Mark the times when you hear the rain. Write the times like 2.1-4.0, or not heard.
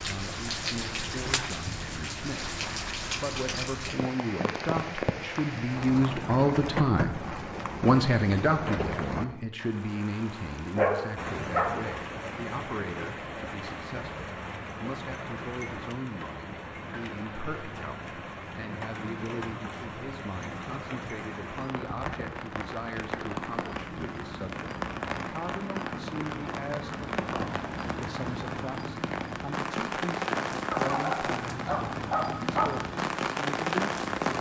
0.0-34.3.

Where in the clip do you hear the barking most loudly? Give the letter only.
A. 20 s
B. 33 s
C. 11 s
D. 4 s
C.